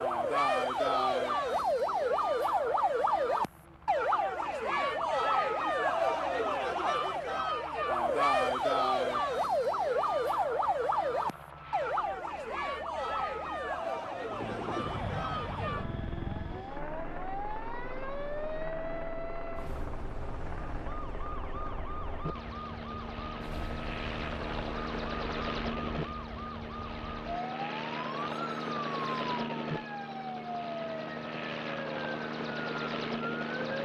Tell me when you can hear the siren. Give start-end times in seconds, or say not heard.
0.0-33.8.